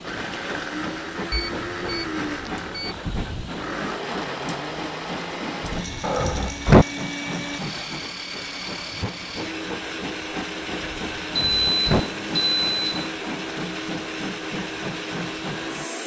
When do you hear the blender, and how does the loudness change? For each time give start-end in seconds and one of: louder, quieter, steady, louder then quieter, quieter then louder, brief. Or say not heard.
0.0-16.0 steady.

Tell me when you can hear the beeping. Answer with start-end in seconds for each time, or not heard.
1.3-3.0, 6.0-6.7, 11.3-13.2.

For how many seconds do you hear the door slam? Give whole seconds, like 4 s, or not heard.
3 s.